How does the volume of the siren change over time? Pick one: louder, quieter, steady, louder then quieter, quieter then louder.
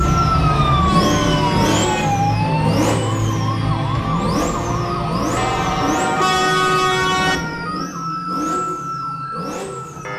quieter.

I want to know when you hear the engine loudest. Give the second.
1 s.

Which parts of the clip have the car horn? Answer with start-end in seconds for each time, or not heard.
0.1-2.0, 5.3-7.4.